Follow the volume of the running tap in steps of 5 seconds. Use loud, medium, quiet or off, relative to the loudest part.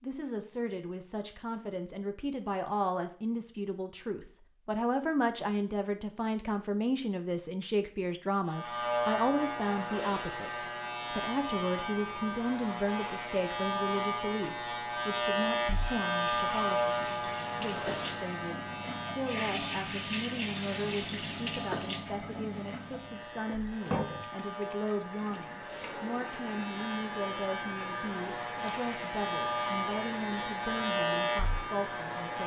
off, off, off, loud, loud, medium, medium.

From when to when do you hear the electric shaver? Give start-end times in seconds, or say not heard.
8.4-32.4.